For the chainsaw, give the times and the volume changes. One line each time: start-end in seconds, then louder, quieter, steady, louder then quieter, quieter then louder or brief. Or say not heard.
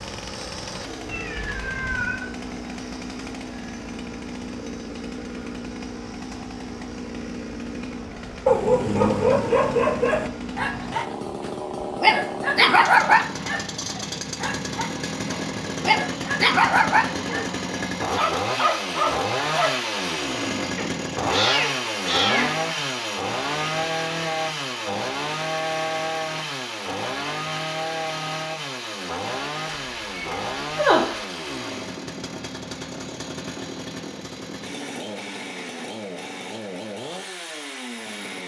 0.0-38.4 louder then quieter.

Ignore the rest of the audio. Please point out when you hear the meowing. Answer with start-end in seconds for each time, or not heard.
1.1-2.3, 20.8-22.5, 29.6-31.1.